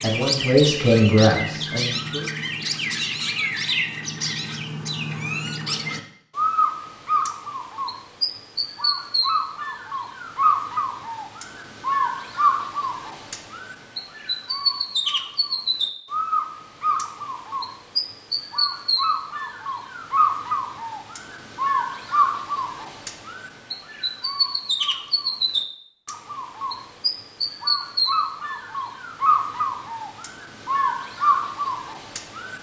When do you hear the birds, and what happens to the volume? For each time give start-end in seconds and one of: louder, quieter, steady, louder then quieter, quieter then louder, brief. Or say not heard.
0.0-32.5 steady.